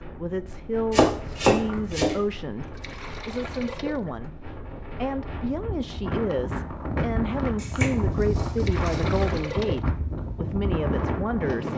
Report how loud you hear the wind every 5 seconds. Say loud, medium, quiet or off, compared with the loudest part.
quiet, loud, loud.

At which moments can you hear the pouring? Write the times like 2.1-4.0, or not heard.
2.6-4.3, 8.4-9.8.